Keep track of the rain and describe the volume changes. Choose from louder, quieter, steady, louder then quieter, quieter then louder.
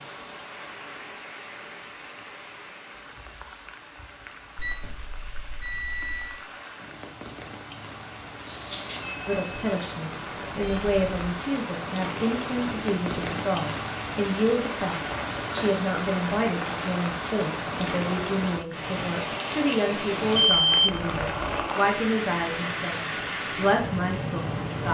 louder.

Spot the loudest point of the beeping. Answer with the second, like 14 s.
21 s.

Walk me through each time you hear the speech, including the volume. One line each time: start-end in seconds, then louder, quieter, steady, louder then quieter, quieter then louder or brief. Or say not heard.
9.2-24.8 steady.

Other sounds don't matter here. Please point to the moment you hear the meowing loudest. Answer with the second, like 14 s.
9 s.